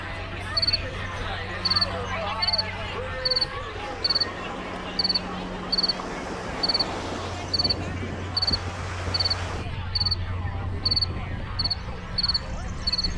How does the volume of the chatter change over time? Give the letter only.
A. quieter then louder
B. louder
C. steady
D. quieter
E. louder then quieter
D.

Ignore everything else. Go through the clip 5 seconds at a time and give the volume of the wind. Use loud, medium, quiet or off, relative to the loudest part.
medium, loud, medium.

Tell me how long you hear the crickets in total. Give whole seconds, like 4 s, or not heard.
13 s.